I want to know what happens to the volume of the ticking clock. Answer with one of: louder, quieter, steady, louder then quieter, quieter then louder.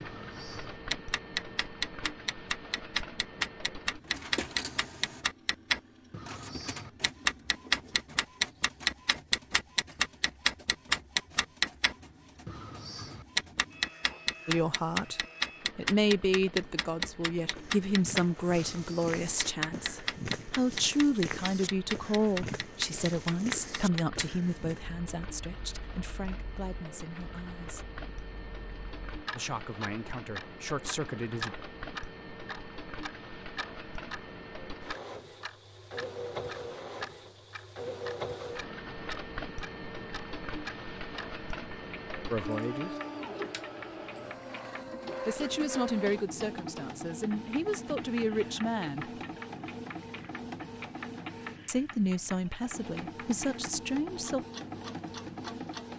quieter.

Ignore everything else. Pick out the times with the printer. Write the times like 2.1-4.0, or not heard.
0.0-55.9.